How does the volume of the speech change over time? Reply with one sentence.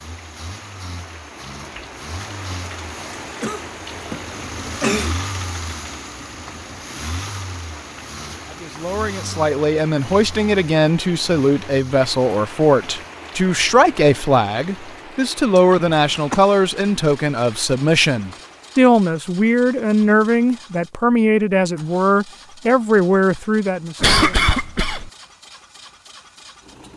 The volume of the speech stays about the same.